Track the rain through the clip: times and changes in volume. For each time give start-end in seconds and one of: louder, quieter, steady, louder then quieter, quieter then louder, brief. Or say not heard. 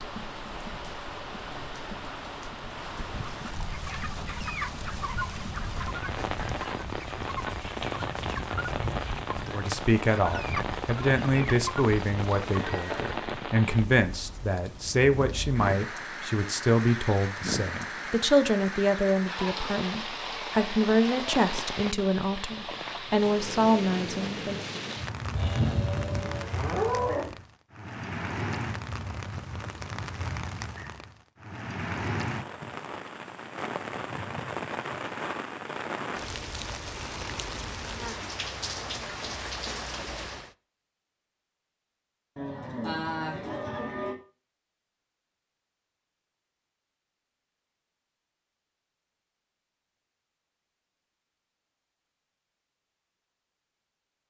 0.0-40.5 steady.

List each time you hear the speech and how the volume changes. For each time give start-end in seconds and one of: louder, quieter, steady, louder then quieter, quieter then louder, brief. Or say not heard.
9.5-24.6 steady.